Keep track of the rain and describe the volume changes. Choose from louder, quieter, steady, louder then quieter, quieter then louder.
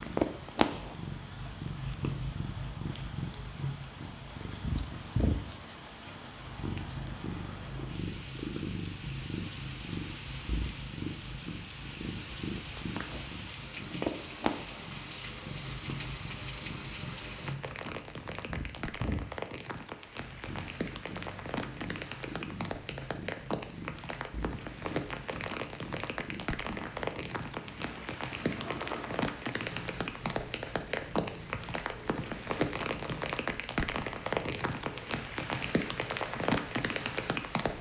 louder.